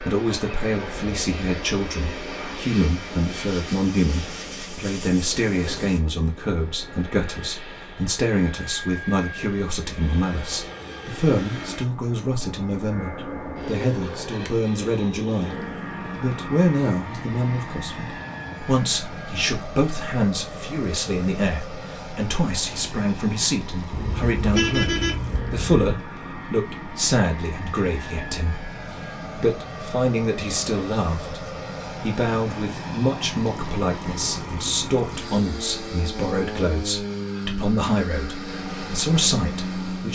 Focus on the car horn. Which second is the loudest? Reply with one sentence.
The volume of the car horn peaks at 25 seconds.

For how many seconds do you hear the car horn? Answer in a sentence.
You can hear the car horn for 2 seconds altogether.